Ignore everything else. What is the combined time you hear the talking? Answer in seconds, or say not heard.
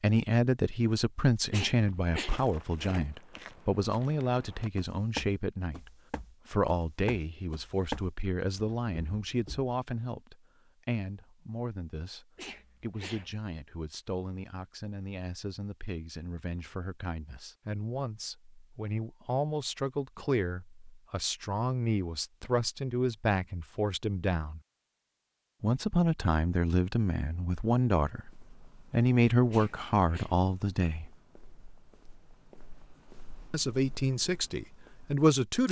32 s.